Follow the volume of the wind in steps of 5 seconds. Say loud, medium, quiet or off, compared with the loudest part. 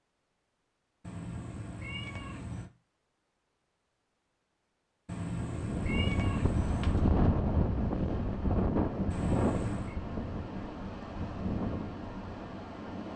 off, loud, medium.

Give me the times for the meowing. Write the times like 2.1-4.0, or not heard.
1.0-2.7, 5.0-7.1, 9.1-9.9.